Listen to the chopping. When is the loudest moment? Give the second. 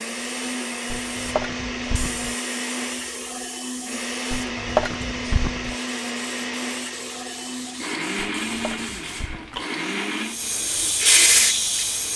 5 s.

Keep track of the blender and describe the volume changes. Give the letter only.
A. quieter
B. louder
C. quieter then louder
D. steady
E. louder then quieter
D.